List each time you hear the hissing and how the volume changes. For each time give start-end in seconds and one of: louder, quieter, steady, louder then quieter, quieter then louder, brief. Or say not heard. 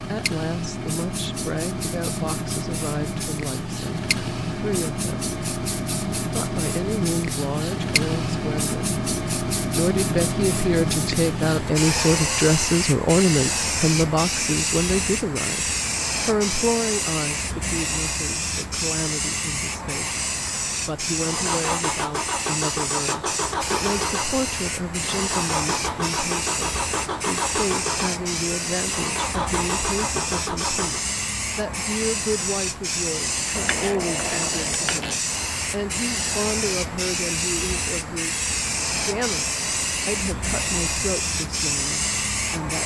0.0-42.8 steady.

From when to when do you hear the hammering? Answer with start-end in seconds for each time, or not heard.
not heard.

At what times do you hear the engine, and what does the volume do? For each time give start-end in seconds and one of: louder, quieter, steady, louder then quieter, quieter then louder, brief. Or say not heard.
21.1-31.1 steady.